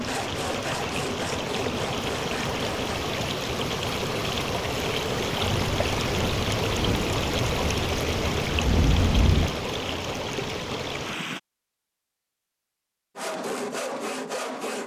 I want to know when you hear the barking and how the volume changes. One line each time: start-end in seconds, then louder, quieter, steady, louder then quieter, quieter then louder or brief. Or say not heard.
not heard.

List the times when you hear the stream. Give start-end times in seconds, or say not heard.
0.0-11.4.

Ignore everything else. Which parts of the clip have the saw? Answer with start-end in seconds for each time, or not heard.
0.0-3.0, 13.2-14.8.